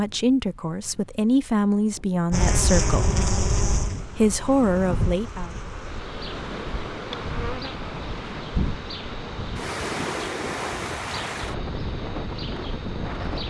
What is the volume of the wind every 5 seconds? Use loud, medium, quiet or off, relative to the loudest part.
medium, loud, loud.